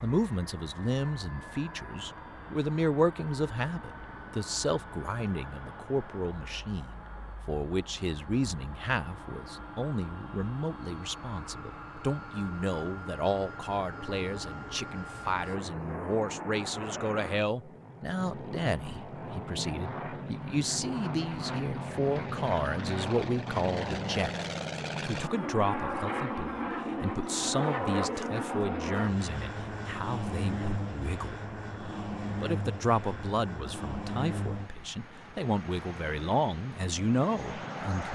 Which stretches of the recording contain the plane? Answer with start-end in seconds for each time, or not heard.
0.0-38.1.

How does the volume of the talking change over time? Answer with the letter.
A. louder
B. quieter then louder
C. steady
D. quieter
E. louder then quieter
C.